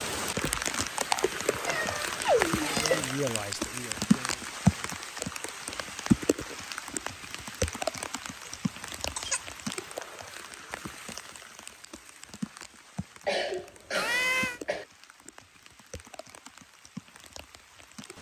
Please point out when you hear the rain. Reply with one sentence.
You can hear the rain from 0.0 to 18.1 s.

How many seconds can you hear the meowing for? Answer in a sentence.
The meowing can be heard for 2 seconds in total.